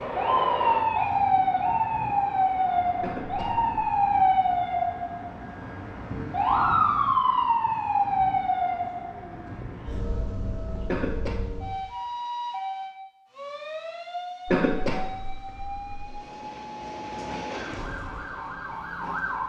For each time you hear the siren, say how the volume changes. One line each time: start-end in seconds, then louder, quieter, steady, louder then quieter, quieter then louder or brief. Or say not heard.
0.0-19.4 quieter.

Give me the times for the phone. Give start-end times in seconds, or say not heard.
not heard.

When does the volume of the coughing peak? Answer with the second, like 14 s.
15 s.